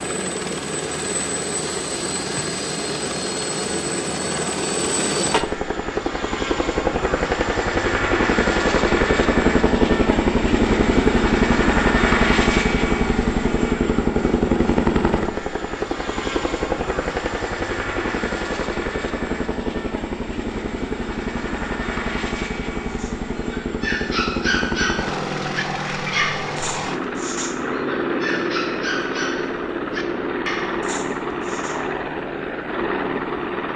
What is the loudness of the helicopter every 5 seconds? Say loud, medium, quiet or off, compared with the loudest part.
medium, loud, loud, medium, medium, medium, medium.